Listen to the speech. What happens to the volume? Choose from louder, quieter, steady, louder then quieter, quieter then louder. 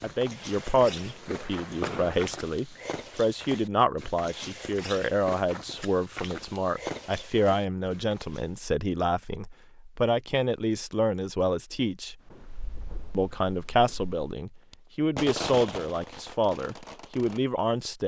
steady.